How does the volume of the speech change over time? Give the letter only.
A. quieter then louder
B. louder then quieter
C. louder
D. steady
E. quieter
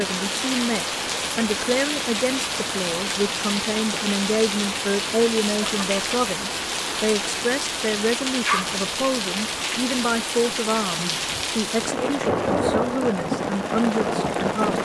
D.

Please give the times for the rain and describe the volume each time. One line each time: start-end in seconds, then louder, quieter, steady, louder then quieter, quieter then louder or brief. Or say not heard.
0.0-14.7 steady.